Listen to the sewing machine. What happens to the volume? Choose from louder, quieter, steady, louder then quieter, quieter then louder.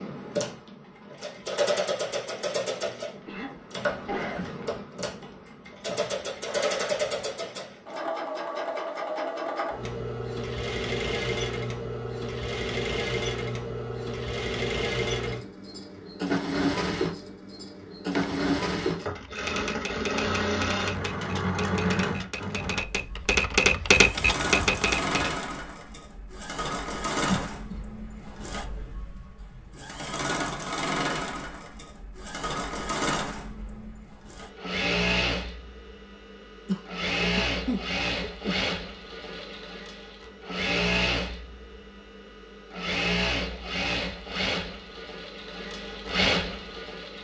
steady.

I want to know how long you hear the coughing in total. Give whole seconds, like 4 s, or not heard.
4 s.